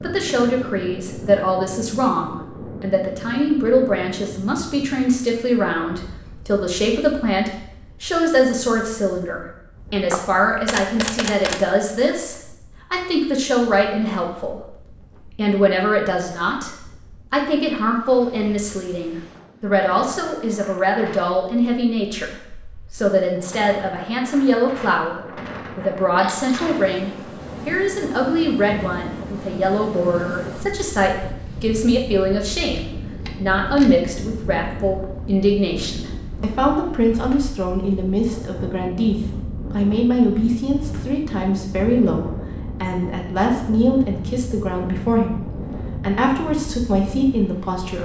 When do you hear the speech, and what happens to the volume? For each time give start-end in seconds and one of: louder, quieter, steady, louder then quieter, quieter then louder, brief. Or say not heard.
0.0-48.0 steady.